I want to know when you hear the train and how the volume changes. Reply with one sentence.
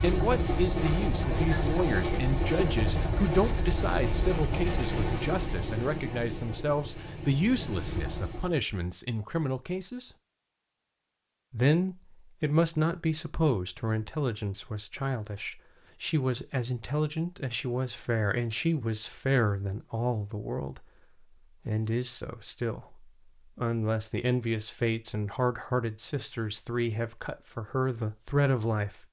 You can hear the train from 0.0 to 8.6 s, getting quieter.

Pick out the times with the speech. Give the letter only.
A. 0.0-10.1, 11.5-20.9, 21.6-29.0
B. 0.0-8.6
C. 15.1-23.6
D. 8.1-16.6
A.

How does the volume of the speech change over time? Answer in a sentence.
The loudness of the speech stays about the same.